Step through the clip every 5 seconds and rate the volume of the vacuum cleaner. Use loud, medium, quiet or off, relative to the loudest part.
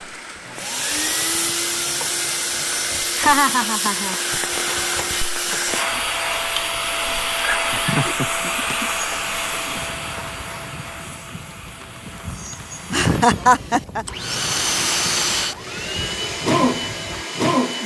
loud, loud, medium, loud.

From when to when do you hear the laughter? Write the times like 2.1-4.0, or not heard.
3.1-4.2, 7.7-8.8, 12.9-14.1.